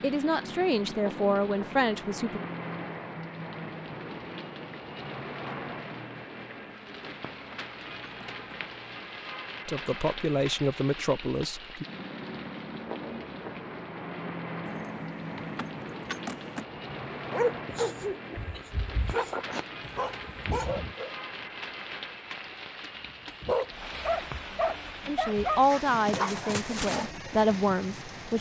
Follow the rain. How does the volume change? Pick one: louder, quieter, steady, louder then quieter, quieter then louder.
steady.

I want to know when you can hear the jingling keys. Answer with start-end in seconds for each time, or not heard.
6.6-8.4, 14.7-16.6.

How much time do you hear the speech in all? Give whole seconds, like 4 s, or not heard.
8 s.